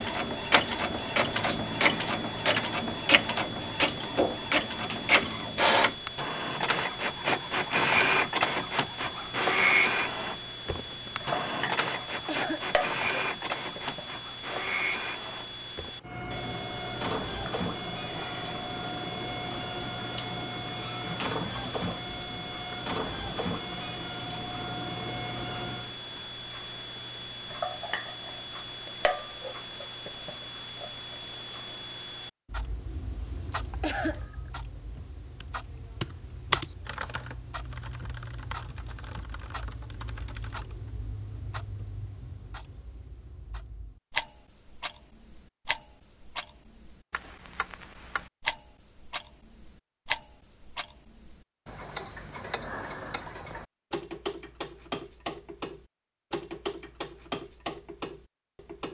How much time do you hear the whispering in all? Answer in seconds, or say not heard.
not heard.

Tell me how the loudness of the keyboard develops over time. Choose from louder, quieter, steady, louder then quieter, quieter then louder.
quieter.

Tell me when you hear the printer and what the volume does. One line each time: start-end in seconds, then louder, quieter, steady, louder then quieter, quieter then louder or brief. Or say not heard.
0.0-25.9 quieter.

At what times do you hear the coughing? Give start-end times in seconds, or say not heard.
12.2-12.7, 33.8-34.4.